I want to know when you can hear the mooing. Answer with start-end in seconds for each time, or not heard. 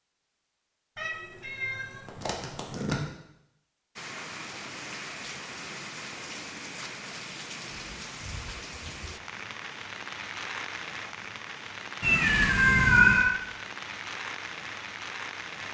not heard.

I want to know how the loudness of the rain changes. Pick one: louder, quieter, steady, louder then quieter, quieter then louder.
steady.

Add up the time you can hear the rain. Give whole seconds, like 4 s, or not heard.
12 s.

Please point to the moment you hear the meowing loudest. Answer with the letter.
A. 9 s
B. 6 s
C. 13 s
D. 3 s
C.